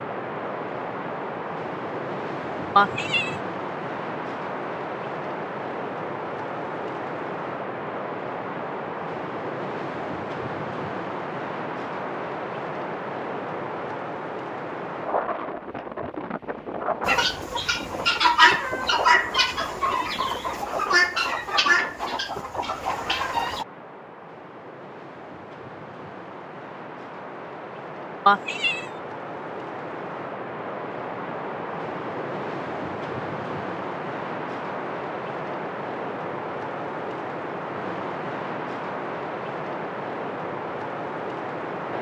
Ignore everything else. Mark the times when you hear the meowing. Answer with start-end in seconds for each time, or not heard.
2.8-3.4, 28.2-28.9.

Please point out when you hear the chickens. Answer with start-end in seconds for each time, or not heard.
17.1-23.6.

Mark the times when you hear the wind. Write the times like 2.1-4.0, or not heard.
0.0-41.9.